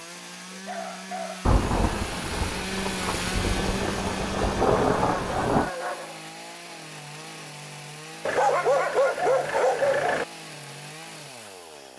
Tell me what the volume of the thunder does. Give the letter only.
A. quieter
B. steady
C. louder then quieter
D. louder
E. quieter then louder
D.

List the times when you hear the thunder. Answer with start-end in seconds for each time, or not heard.
1.4-5.7.